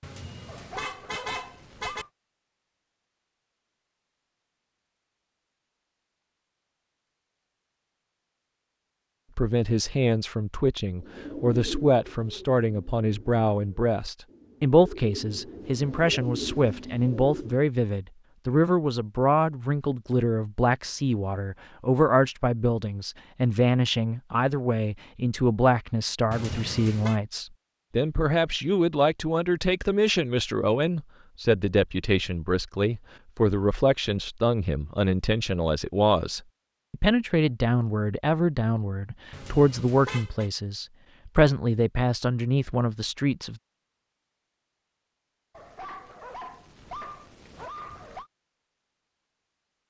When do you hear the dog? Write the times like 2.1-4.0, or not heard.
0.5-2.1, 45.5-48.3.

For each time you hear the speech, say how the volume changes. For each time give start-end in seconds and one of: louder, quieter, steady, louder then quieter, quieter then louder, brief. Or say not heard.
9.3-43.6 steady.